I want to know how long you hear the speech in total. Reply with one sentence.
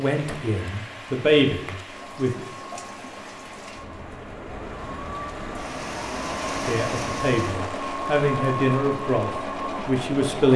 You can hear the speech for 6 seconds altogether.